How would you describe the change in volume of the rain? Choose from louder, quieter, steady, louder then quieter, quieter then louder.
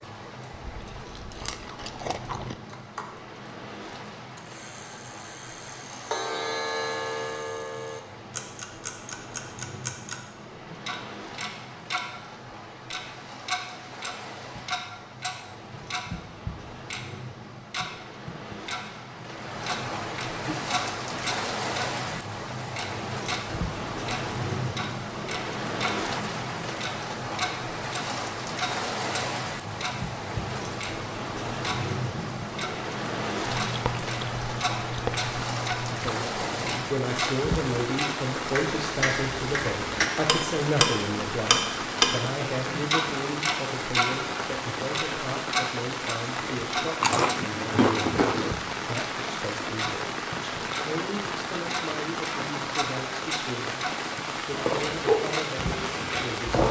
louder.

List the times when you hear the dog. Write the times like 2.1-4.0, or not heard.
54.5-56.6.